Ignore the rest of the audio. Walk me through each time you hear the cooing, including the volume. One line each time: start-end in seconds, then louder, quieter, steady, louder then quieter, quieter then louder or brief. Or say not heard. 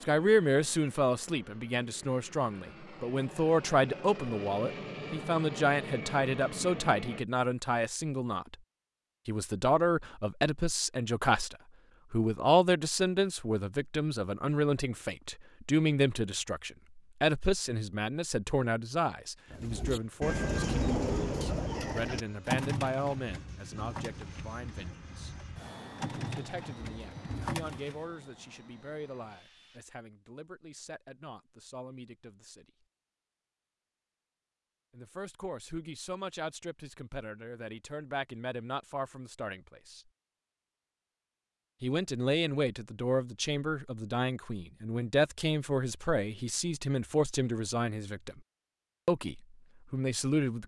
19.5-28.0 quieter then louder.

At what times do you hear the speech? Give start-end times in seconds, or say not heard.
0.0-8.6, 9.2-25.3, 26.2-32.7, 34.9-40.0, 41.8-48.4, 49.0-50.6.